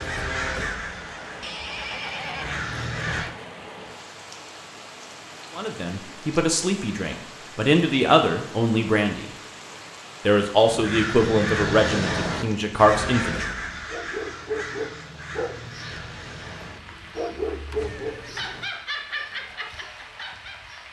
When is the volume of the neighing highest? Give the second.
2 s.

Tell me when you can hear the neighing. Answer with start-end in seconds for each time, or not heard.
1.4-3.4, 17.7-18.7.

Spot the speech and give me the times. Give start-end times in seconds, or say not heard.
5.5-9.2, 10.2-13.4.